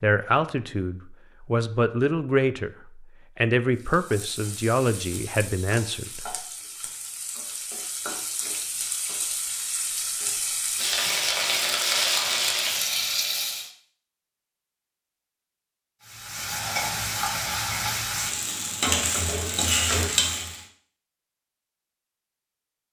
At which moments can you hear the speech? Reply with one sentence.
You can hear the speech from 0.0 to 6.3 s.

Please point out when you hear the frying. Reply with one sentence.
The frying can be heard from 3.8 to 13.7 s and from 16.0 to 20.6 s.